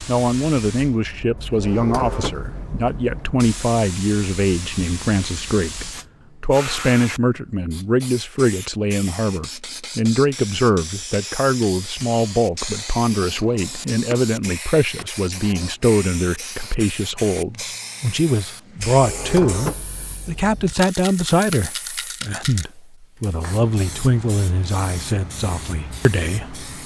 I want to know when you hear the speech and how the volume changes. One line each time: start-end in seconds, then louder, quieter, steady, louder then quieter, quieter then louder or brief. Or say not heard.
0.1-26.6 steady.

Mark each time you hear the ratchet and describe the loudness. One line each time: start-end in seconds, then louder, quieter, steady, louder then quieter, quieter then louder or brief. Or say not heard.
not heard.